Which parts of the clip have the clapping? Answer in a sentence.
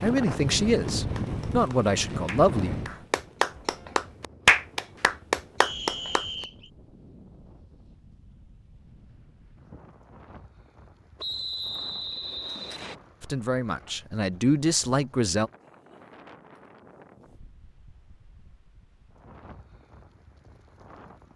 You can hear the clapping from 0.8 to 6.5 s.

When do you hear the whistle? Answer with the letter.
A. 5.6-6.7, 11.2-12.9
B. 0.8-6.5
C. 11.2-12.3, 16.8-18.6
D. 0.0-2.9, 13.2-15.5
A.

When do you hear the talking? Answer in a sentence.
The talking can be heard from 0.0 to 2.9 s and from 13.2 to 15.5 s.